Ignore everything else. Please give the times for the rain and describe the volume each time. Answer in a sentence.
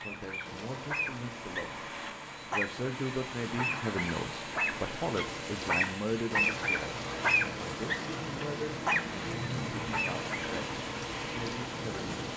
You can hear the rain from 0.0 to 12.3 s, getting louder.